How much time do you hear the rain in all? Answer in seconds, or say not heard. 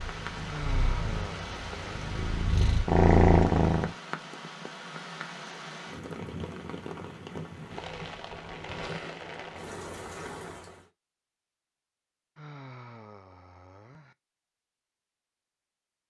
11 s.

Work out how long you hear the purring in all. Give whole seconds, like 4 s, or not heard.
4 s.